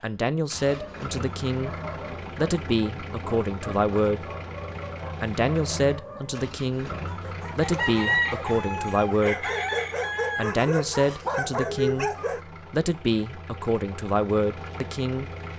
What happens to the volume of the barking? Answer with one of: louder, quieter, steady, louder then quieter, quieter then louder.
louder.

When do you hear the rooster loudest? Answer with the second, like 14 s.
8 s.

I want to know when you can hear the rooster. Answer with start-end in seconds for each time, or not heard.
7.6-10.5.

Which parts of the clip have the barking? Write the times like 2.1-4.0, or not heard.
0.6-12.4.